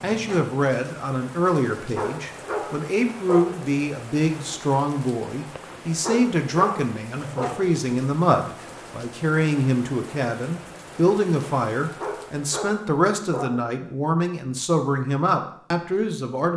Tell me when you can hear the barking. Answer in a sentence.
You can hear the barking from 1.9 to 3.8 s, from 6.0 to 7.8 s and from 12.0 to 13.7 s.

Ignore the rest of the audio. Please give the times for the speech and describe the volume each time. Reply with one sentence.
You can hear the speech from 0.0 to 16.5 s, at a steady volume.